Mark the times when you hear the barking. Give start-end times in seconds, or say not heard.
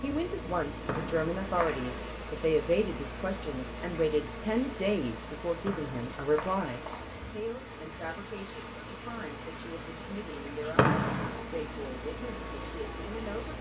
not heard.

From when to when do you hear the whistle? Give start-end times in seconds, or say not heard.
0.8-2.0, 5.7-7.2, 10.8-11.4.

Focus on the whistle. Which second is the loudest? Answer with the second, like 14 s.
11 s.